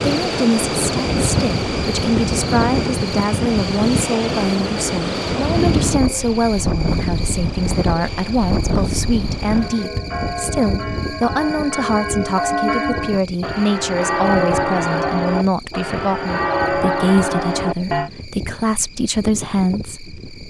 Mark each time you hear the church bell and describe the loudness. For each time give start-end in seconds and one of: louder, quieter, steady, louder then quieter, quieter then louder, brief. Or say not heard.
9.4-18.1 louder.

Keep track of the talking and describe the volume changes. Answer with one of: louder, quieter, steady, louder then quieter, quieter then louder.
steady.